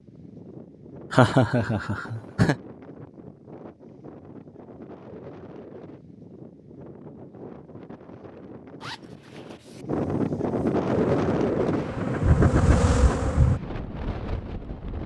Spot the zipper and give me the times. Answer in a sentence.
You can hear the zipper from 8.8 to 9.8 s.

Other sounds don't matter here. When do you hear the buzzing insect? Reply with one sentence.
You can hear the buzzing insect from 10.8 to 13.6 s.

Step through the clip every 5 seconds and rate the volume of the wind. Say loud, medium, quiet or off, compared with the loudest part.
quiet, quiet, loud.